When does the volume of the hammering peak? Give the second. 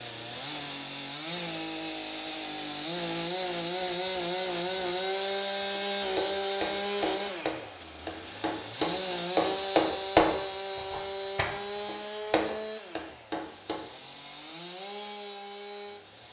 10 s.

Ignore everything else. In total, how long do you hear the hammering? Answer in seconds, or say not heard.
8 s.